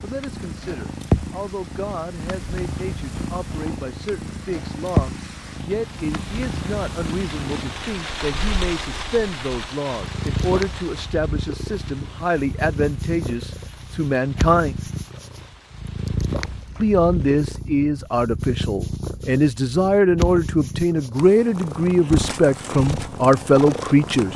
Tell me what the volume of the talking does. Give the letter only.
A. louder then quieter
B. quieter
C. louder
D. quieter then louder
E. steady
C.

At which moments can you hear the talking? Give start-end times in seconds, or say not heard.
0.0-14.8, 16.8-24.3.